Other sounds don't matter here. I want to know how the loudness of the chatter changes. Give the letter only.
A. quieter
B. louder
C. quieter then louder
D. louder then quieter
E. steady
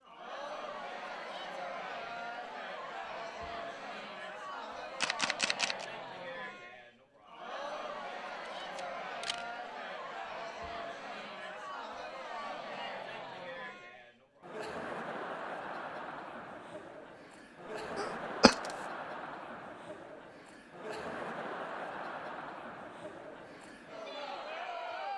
E.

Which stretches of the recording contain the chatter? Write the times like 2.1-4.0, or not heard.
0.0-25.1.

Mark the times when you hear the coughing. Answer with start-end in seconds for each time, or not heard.
17.9-18.6.